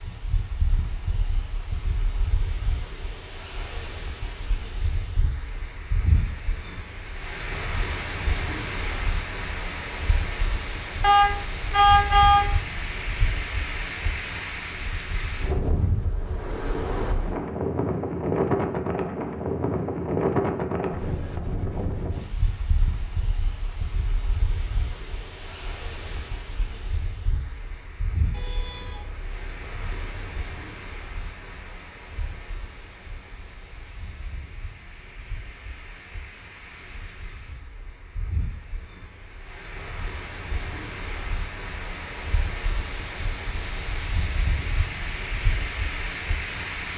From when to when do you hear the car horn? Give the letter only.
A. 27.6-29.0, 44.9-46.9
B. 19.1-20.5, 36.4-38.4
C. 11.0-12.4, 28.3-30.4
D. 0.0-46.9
C.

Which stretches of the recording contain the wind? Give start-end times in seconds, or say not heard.
0.0-46.9.